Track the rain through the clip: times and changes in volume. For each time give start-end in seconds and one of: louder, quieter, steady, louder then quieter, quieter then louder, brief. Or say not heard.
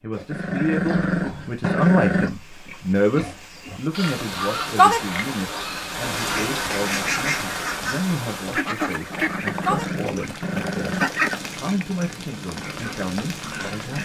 3.9-13.9 quieter.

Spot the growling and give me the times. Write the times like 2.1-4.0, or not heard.
0.3-2.3, 9.1-11.1.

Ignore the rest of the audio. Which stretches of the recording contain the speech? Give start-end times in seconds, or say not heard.
0.0-13.9.